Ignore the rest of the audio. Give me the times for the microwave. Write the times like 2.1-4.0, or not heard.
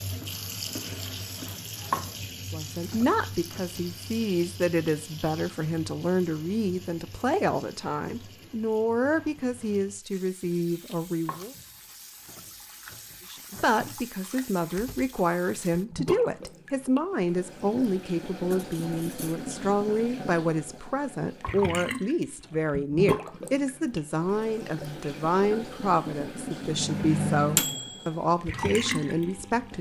26.6-29.7.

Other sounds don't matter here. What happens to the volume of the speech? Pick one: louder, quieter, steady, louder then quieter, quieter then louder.
steady.